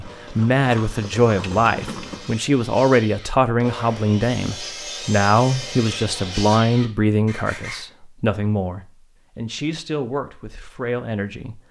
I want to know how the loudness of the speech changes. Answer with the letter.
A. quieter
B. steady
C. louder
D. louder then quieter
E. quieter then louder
A.